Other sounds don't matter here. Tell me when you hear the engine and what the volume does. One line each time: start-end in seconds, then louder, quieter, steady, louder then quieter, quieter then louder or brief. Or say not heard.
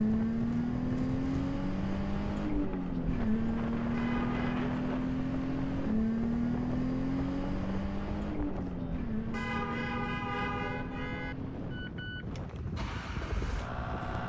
0.0-14.2 quieter.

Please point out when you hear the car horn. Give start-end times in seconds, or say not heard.
3.9-4.6, 9.3-11.3.